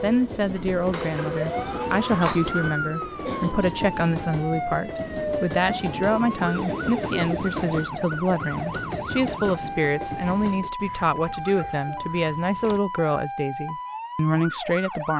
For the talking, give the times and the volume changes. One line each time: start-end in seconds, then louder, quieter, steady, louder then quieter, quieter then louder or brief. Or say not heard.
0.0-15.1 steady.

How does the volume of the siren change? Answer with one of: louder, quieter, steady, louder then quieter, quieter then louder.
steady.